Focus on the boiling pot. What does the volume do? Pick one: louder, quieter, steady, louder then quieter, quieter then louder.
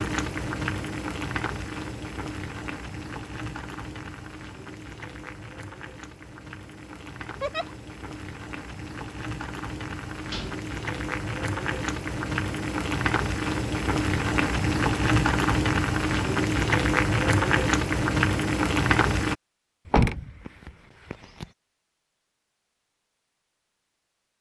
quieter then louder.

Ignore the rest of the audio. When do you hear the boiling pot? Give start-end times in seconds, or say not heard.
0.0-19.4.